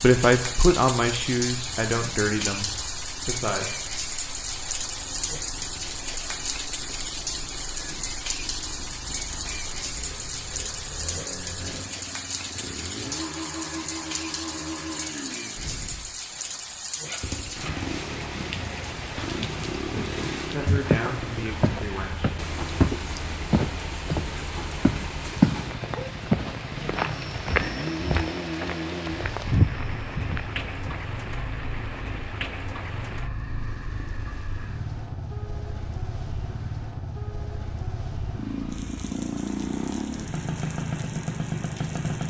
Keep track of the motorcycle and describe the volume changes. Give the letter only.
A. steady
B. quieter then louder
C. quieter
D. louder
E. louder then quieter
D.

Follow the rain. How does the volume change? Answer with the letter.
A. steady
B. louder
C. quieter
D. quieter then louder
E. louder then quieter
C.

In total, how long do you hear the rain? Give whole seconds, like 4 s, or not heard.
42 s.